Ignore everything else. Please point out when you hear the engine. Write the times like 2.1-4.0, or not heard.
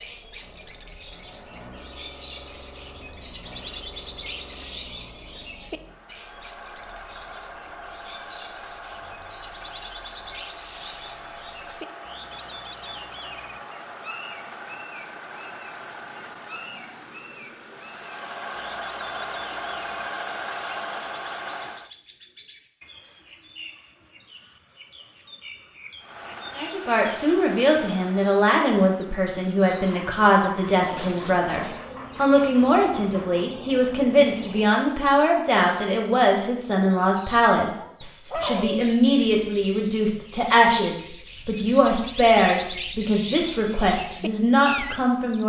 0.0-21.9, 25.9-33.5.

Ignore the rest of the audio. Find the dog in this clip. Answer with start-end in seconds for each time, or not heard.
37.8-39.0.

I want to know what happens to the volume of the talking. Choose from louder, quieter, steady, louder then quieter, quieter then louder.
steady.